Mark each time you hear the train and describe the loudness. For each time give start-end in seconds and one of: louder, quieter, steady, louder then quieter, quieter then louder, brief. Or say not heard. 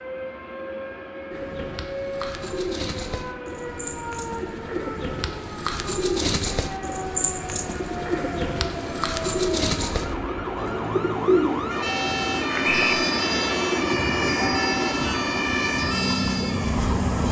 0.0-17.2 louder.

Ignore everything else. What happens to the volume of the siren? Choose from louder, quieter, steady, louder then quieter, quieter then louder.
louder.